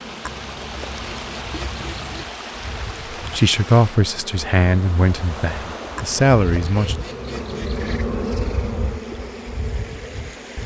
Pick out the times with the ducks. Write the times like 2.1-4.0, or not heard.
0.2-2.2, 6.0-8.0.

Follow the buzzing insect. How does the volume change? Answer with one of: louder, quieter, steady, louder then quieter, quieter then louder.
louder.